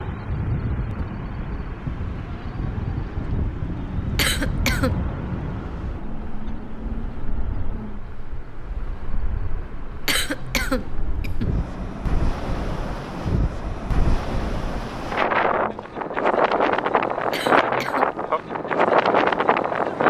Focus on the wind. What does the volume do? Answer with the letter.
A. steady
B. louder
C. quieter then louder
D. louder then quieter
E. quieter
C.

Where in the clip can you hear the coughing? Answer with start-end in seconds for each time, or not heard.
4.2-5.0, 10.1-11.6, 17.3-18.1.